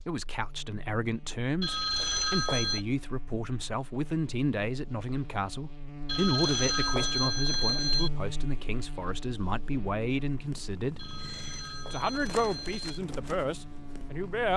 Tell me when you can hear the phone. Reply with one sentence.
You can hear the phone from 1.6 to 2.9 s, from 6.0 to 8.1 s and from 10.9 to 13.0 s.